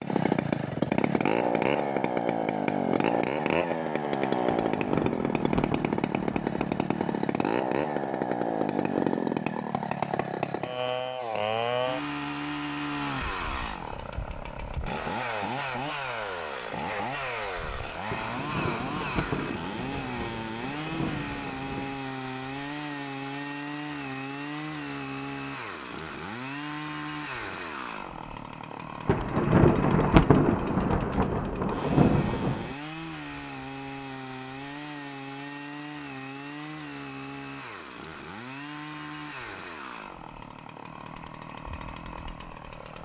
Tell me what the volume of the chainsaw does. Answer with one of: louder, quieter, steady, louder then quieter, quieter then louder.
quieter.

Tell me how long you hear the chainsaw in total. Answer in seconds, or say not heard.
43 s.